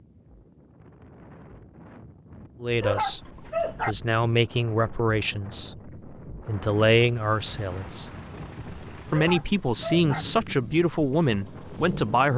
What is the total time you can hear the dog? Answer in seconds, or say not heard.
2 s.